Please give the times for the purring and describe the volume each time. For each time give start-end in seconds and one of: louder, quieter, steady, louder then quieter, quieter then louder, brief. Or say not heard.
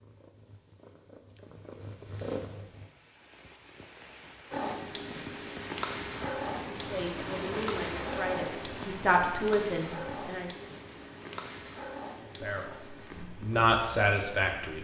0.0-2.9 brief
4.5-14.7 quieter.